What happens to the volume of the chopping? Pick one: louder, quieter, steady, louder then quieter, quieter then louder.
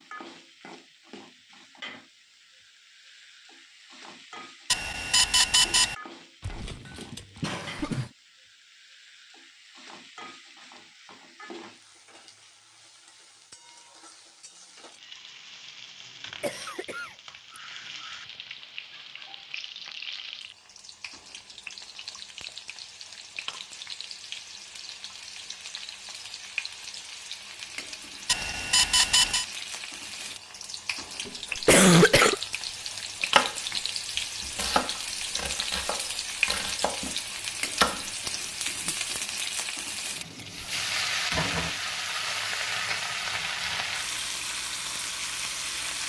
quieter then louder.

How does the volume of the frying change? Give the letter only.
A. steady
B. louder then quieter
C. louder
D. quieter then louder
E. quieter
C.